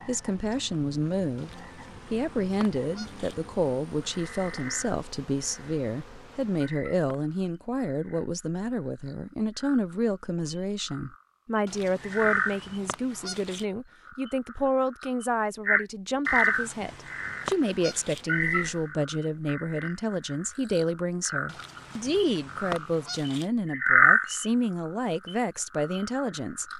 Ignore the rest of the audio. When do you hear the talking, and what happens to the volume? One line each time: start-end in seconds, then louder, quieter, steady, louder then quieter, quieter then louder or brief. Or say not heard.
0.1-26.7 steady.